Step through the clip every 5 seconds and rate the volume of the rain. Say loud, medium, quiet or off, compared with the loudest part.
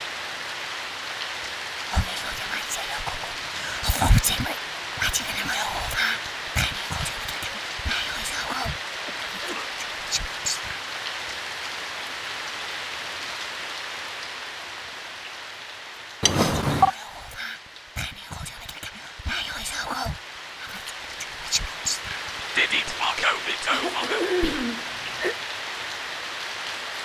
loud, loud, loud, medium, loud, loud.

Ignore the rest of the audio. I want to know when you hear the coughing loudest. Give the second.
24 s.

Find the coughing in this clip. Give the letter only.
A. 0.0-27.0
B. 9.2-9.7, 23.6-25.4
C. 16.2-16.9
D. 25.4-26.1
B.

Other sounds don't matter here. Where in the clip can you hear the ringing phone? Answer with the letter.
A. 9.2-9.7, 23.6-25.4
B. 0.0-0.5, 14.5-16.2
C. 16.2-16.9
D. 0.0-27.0
C.